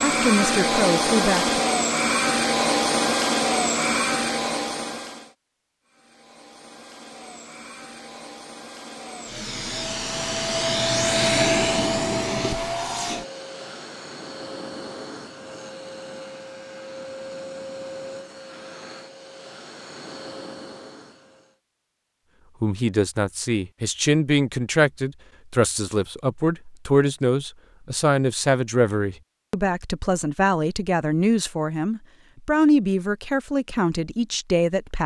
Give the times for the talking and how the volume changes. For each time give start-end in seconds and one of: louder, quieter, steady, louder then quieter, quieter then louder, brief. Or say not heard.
0.0-1.6 brief
22.6-35.0 steady.